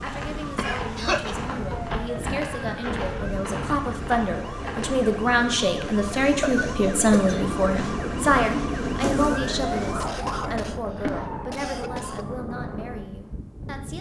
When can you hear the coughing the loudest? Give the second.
1 s.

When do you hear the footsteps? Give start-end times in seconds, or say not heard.
0.0-5.0.